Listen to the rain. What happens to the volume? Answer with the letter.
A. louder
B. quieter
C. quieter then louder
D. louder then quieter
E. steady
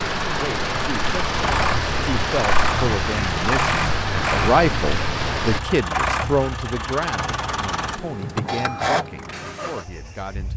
E.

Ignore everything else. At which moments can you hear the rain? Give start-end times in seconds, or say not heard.
0.0-5.6.